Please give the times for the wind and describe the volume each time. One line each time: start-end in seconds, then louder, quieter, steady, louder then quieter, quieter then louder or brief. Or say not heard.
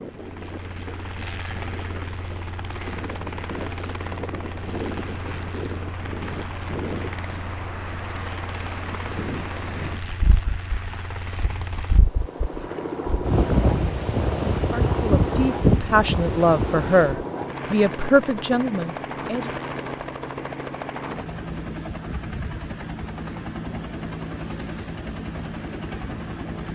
0.0-17.2 louder.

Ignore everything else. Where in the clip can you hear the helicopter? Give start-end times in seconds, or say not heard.
0.0-26.7.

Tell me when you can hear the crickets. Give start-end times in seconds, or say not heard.
not heard.